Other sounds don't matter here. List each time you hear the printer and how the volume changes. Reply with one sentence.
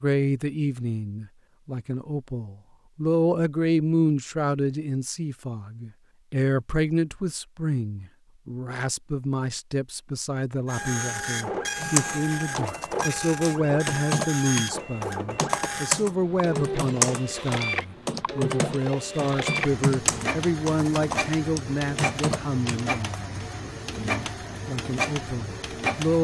The printer can be heard from 10.7 to 26.1 s, at a steady volume.